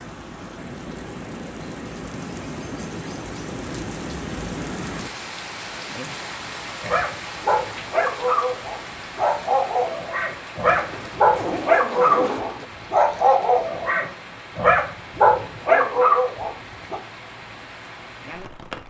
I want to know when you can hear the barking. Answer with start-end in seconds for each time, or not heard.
6.8-17.0.